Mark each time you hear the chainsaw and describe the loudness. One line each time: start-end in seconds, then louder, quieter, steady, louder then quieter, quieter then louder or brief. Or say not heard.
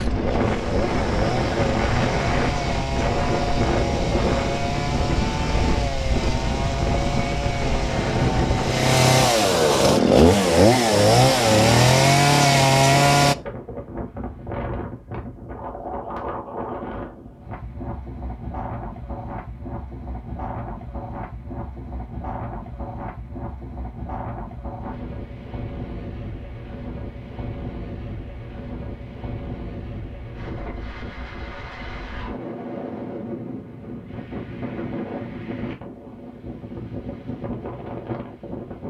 0.0-13.3 louder.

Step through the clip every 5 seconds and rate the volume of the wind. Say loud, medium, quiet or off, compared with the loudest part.
loud, loud, medium, medium, medium, medium, medium, medium.